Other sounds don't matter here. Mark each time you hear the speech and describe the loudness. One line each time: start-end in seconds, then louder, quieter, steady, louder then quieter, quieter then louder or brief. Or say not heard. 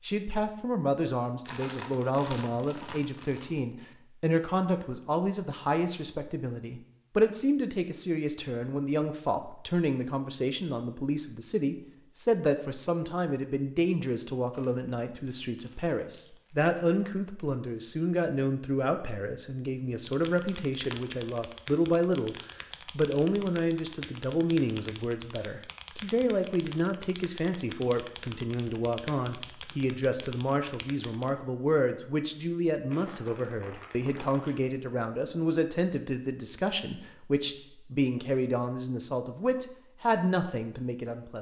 0.0-41.3 steady.